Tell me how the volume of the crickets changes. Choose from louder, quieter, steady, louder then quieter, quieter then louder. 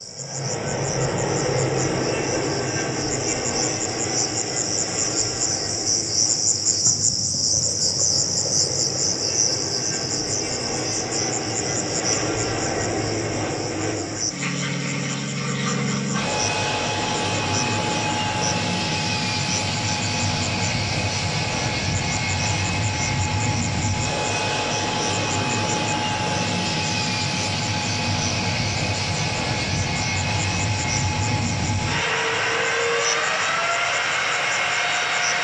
quieter.